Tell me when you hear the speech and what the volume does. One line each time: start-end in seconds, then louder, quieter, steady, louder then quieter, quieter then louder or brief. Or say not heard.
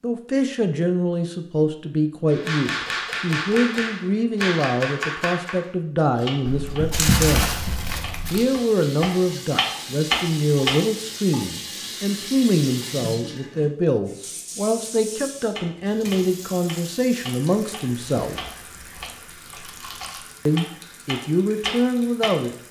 0.0-7.5 steady
8.3-18.4 steady
20.4-22.6 brief.